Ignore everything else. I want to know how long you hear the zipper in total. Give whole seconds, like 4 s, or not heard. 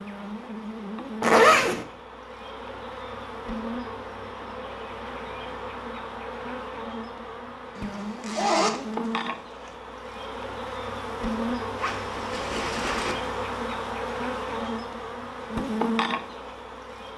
3 s.